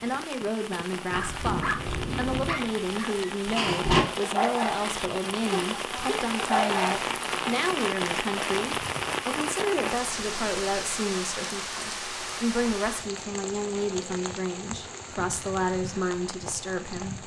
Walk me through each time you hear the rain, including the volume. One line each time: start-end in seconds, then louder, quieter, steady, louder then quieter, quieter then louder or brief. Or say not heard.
0.0-17.2 louder then quieter.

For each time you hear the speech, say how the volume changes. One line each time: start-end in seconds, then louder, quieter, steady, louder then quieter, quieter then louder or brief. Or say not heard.
0.0-17.2 steady.